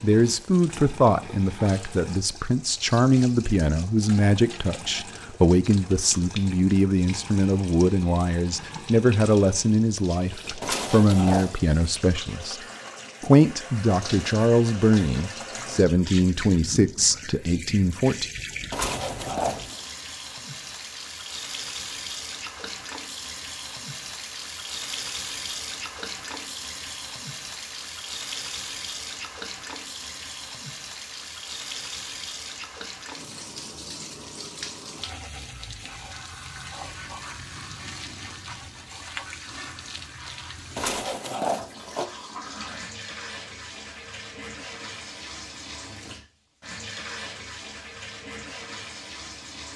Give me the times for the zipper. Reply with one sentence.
The zipper can be heard from 10.6 to 11.6 s, from 18.7 to 19.9 s and from 40.8 to 42.0 s.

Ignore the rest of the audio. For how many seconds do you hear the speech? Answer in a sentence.
You can hear the speech for 18 seconds altogether.